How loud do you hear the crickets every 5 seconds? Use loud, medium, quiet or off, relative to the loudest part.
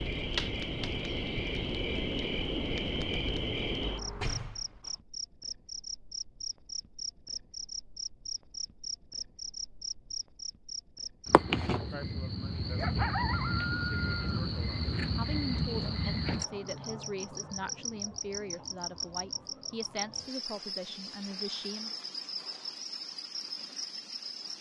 loud, medium, loud, loud, medium.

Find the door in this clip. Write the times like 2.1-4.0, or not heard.
3.8-5.0.